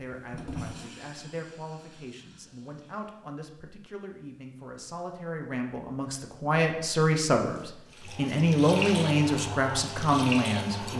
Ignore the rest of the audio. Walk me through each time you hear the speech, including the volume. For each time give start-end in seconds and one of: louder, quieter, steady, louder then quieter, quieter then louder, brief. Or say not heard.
0.0-10.9 louder.